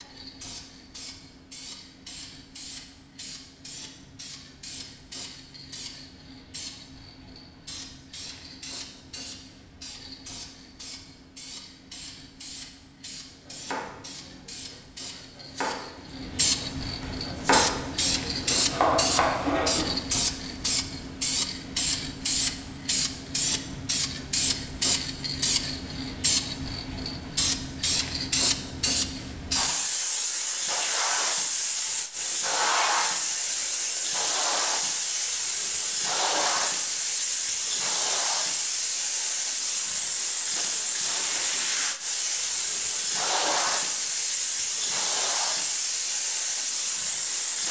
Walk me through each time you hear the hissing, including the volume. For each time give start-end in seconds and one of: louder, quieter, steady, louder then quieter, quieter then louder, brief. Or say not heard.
0.0-47.6 louder.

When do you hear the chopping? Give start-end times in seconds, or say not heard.
13.4-19.9.